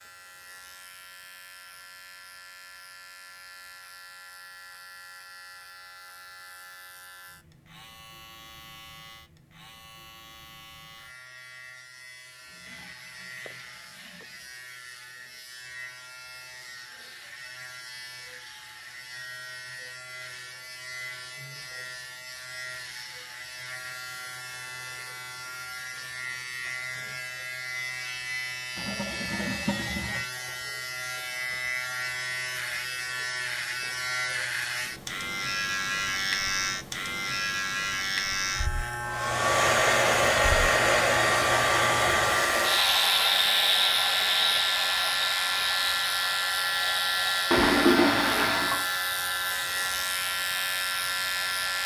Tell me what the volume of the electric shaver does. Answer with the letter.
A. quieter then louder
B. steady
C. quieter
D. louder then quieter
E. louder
E.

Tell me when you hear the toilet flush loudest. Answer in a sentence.
The loudest moment of the toilet flush is at 48 seconds.